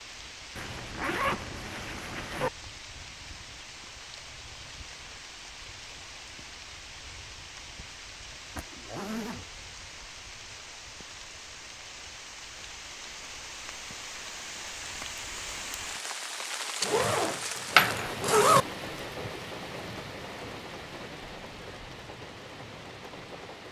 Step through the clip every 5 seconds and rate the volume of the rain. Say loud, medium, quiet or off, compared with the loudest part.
medium, medium, medium, loud, medium.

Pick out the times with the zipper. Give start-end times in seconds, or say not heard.
0.6-2.5, 8.6-9.5, 16.8-18.6.